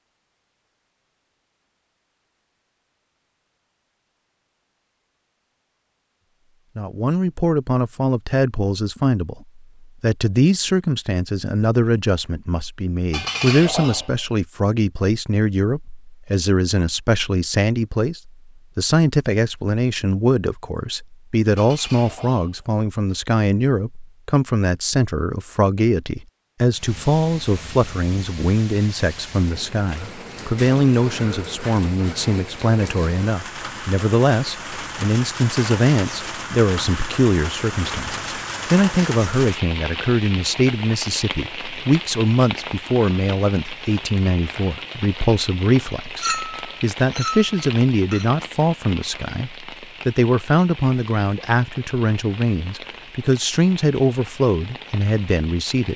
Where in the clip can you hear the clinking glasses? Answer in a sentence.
The clinking glasses can be heard from 13.1 to 14.2 s, from 21.6 to 23.2 s and from 46.2 to 48.2 s.